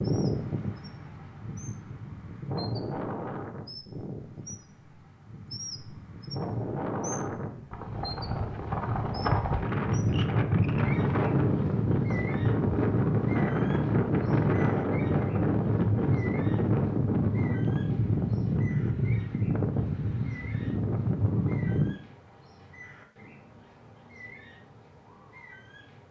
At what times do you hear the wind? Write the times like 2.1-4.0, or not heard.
0.0-21.9.